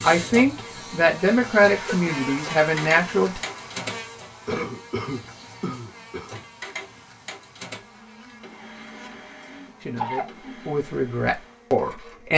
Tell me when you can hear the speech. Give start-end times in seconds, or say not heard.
0.0-3.4, 9.8-12.3.